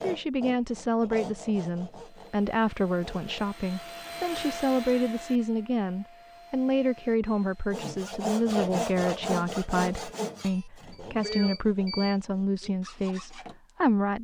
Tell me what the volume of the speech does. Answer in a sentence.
The loudness of the speech stays about the same.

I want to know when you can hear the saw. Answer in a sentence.
You can hear the saw from 0.0 to 3.5 s and from 7.7 to 13.7 s.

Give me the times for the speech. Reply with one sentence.
You can hear the speech from 0.0 to 14.2 s.